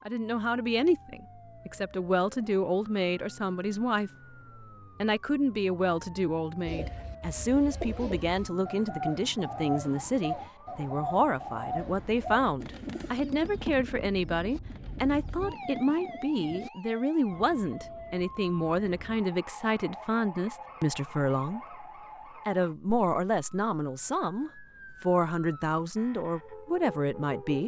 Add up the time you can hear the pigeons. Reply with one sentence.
The pigeons can be heard for 10 seconds in total.